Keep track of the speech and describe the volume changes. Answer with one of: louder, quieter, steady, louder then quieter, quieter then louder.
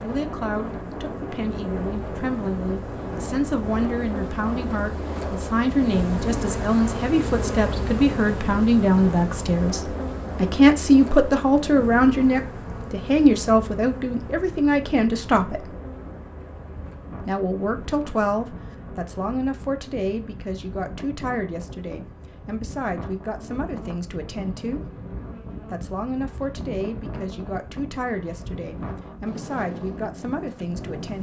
louder then quieter.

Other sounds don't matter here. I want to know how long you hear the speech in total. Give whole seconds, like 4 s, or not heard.
29 s.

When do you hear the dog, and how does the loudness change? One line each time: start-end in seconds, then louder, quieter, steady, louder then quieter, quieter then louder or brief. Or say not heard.
not heard.